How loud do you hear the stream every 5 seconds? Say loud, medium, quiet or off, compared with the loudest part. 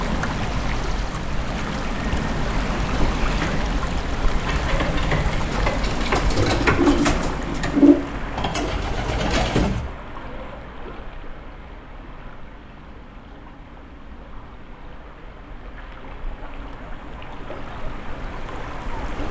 loud, loud, quiet, medium.